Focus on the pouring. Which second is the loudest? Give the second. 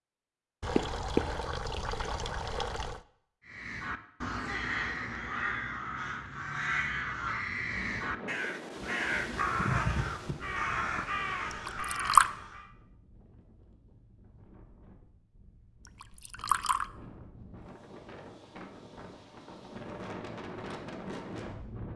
12 s.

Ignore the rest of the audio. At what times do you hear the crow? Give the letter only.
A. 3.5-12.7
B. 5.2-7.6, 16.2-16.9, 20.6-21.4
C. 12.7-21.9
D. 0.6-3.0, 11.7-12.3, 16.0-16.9
A.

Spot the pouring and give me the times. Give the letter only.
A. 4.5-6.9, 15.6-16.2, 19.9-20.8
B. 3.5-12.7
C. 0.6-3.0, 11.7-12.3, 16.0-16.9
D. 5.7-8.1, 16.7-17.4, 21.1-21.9
C.